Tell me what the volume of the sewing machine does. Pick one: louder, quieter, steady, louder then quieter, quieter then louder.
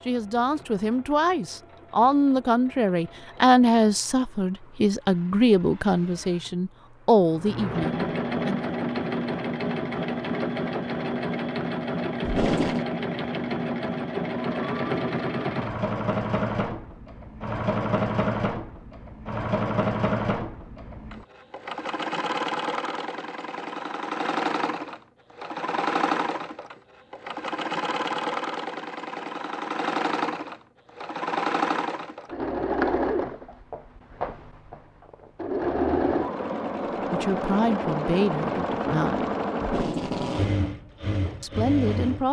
louder.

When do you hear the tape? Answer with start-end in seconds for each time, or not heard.
12.2-12.8, 39.6-40.6.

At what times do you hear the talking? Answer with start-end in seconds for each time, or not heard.
0.1-8.7, 37.1-39.3, 41.4-42.2.